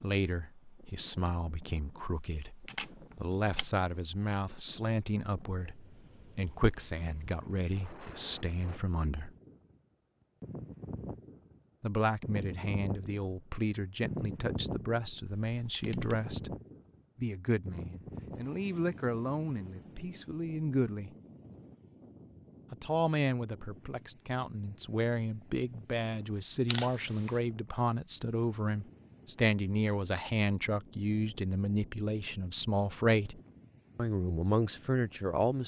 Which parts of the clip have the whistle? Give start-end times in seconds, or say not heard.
not heard.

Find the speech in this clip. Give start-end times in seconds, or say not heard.
0.0-9.3, 11.8-16.6, 17.1-21.1, 22.7-35.6.